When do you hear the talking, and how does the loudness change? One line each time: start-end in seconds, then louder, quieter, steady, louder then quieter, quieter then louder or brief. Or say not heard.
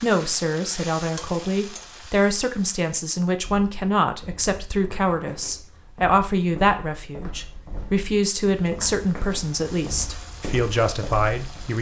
0.0-11.7 steady.